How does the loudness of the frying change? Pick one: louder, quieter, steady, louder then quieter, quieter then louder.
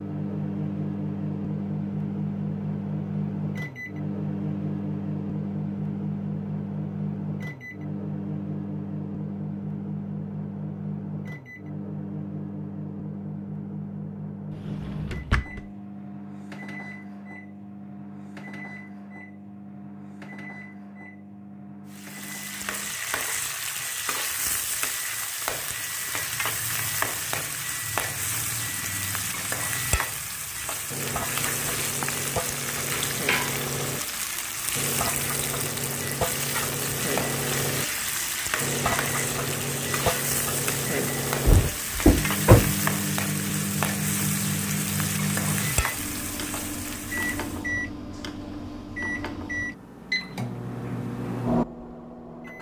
steady.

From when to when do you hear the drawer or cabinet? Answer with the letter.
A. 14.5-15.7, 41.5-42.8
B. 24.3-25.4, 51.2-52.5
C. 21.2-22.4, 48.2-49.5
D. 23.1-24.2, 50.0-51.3
A.